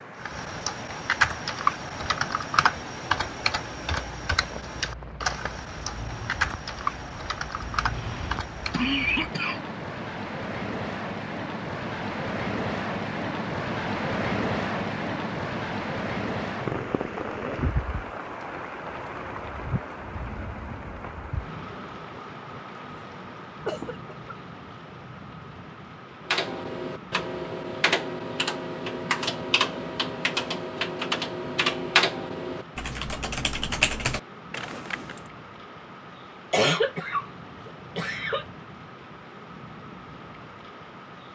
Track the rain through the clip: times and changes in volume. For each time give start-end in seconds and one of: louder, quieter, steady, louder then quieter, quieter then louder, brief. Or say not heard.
0.0-41.3 louder then quieter.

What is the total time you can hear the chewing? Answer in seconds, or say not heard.
not heard.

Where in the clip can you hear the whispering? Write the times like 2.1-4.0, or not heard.
not heard.